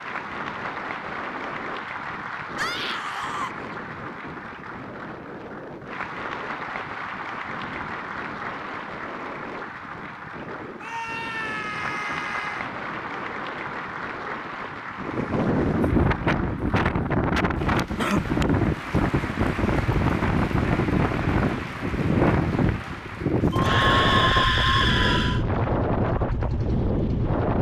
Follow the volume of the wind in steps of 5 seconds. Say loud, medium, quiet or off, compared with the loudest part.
quiet, quiet, quiet, loud, loud, loud.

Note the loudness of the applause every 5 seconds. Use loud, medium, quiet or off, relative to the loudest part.
loud, loud, loud, loud, loud, off.